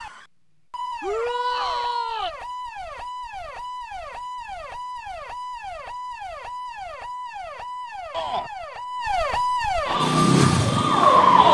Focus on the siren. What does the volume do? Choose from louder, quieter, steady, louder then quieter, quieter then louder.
louder.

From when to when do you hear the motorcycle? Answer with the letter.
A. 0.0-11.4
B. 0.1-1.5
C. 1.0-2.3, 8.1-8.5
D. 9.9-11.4
D.